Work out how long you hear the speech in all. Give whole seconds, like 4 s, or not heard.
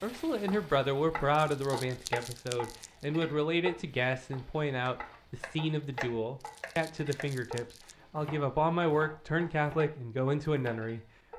11 s.